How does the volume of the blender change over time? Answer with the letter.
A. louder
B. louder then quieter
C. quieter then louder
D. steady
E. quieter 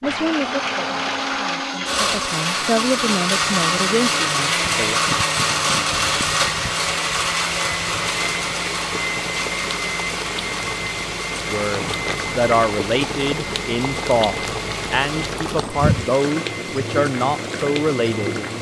E.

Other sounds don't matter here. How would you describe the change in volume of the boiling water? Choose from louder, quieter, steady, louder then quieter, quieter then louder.
louder.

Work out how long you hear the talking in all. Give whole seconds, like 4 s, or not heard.
12 s.